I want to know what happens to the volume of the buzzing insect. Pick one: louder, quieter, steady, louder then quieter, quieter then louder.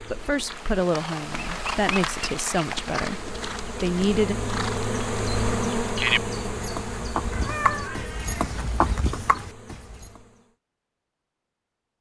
louder then quieter.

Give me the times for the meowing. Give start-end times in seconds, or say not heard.
7.3-8.6.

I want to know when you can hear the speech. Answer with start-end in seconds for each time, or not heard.
0.1-4.3.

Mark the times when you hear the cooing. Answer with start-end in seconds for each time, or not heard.
not heard.